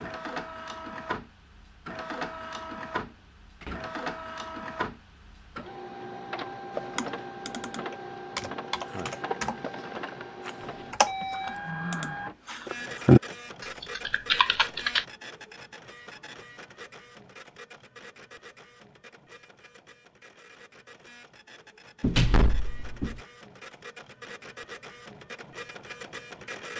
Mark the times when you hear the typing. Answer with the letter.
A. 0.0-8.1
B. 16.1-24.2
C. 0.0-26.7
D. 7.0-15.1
D.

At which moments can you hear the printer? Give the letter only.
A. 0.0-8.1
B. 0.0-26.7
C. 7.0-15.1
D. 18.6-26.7
B.